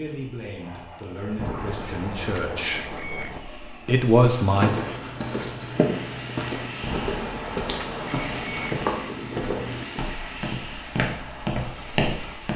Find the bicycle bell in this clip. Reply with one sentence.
The bicycle bell can be heard from 1.4 to 3.4 s and from 6.8 to 8.8 s.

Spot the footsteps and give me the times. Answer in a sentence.
You can hear the footsteps from 4.4 to 12.5 s.